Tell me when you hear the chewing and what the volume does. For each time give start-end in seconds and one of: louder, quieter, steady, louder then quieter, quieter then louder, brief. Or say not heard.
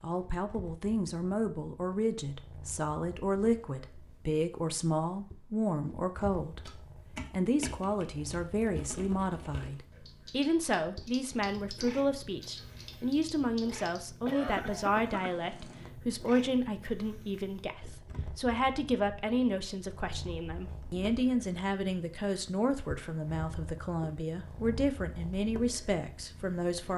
not heard.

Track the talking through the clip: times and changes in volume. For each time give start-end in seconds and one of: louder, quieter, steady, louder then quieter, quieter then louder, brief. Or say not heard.
0.0-26.9 steady.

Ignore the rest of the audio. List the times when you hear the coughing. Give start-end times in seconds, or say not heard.
14.2-15.3.